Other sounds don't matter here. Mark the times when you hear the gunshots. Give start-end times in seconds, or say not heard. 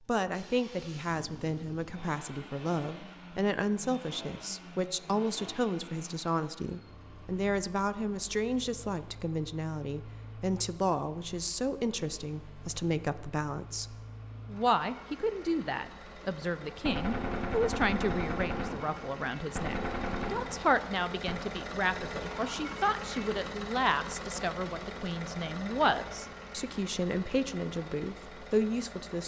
16.9-21.4.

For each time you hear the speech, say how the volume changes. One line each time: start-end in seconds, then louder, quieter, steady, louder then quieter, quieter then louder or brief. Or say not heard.
0.1-29.2 steady.